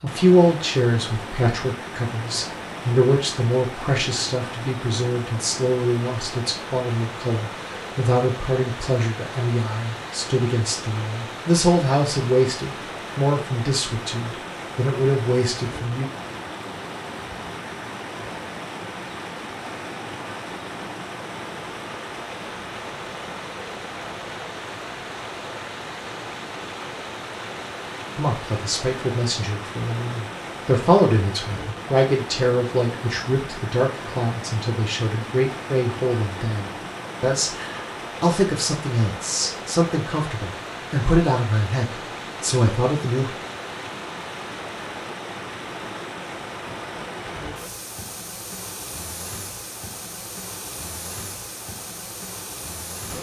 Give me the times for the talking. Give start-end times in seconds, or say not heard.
0.0-16.1, 28.1-43.3.